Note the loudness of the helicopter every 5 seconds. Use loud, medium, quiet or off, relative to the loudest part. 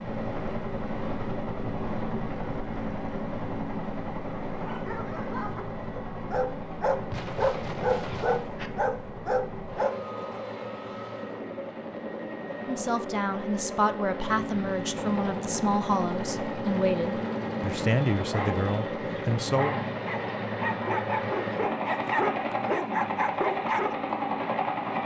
loud, medium, medium, loud, loud.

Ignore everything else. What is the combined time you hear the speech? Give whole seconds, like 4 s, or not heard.
7 s.